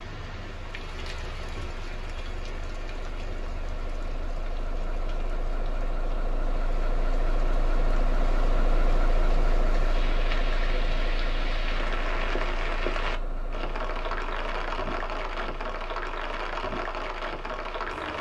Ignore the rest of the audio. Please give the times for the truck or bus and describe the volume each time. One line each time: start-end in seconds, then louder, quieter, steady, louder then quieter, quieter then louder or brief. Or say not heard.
0.0-18.1 louder then quieter.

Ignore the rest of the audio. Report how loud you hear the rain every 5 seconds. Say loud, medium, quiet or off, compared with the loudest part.
medium, quiet, loud, loud.